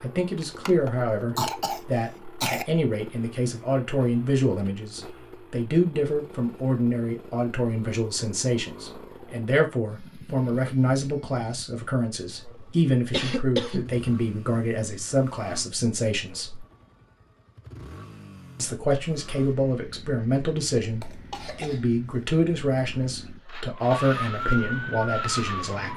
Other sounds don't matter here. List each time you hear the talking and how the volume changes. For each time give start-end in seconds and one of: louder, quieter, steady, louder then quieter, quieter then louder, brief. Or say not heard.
0.0-16.6 steady
18.6-25.9 steady.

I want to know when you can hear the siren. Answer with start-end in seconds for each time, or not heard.
23.6-25.9.